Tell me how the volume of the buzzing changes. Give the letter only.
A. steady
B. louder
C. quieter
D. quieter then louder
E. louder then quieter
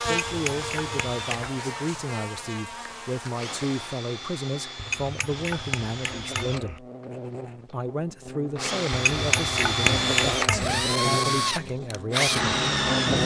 D.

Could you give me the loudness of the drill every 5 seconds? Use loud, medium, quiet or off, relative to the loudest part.
quiet, medium, loud.